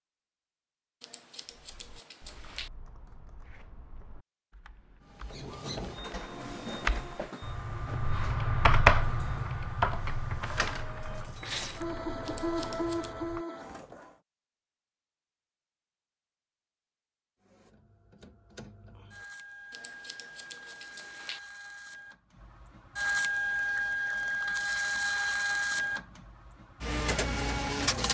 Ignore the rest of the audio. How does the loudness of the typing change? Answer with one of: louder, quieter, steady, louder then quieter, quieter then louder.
louder then quieter.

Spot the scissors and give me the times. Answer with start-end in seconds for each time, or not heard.
1.0-2.7, 12.2-13.2, 19.7-21.4.